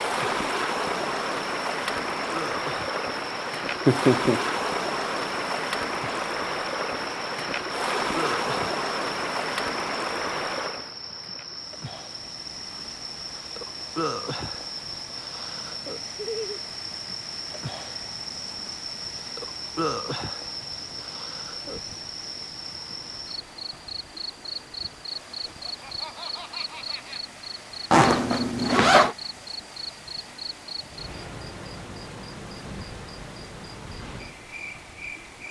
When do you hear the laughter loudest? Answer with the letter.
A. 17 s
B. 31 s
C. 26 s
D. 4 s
D.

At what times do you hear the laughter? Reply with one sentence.
You can hear the laughter from 3.9 to 4.5 s, from 16.1 to 16.6 s and from 25.4 to 27.2 s.